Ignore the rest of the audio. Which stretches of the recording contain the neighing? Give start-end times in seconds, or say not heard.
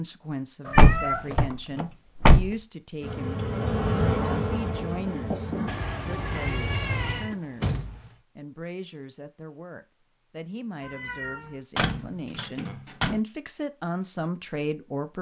not heard.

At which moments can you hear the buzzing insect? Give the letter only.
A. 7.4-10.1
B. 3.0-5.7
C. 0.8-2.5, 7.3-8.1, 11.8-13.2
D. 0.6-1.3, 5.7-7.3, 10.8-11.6
B.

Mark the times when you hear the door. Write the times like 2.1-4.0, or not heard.
0.8-2.5, 7.3-8.1, 11.8-13.2.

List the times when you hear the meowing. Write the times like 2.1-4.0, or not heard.
0.6-1.3, 5.7-7.3, 10.8-11.6.